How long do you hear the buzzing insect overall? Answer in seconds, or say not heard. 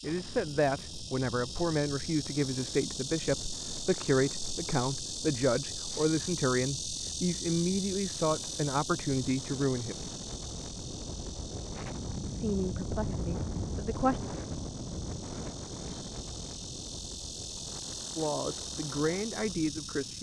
20 s.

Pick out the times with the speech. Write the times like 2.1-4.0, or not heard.
0.0-9.9, 12.2-14.2, 18.1-20.1.